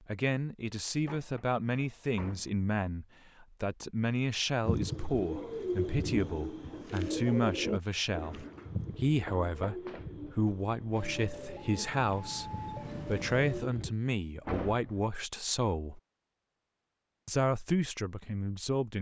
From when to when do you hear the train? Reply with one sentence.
You can hear the train from 10.9 to 13.7 s.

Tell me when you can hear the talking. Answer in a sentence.
You can hear the talking from 0.1 to 16.0 s and from 17.2 to 18.9 s.